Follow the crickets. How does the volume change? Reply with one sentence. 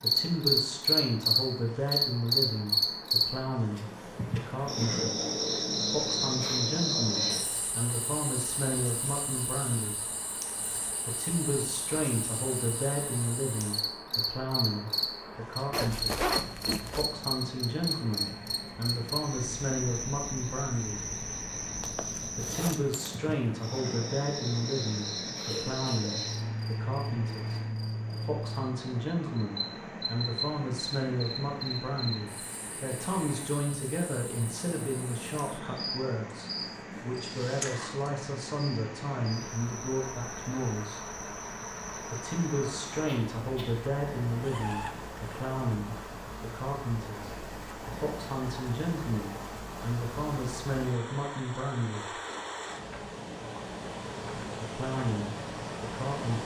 The loudness of the crickets goes down.